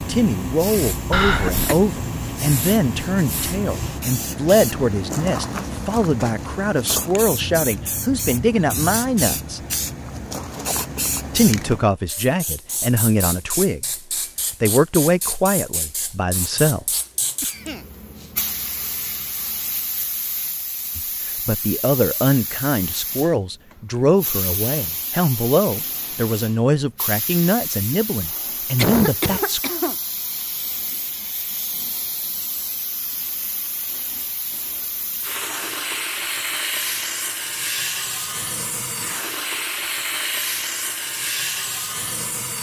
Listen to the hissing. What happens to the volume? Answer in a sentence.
The volume of the hissing goes down, then up.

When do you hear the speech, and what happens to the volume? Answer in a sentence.
The speech can be heard from 0.1 to 9.6 s, at a steady volume; briefly from 11.3 to 13.8 s; briefly from 14.6 to 17.0 s; and from 20.9 to 29.6 s, at a steady volume.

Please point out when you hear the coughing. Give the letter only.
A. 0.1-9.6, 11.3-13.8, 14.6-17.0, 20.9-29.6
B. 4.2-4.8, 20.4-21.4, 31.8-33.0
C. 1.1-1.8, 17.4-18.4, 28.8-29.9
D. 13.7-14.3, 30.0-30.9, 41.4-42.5
C.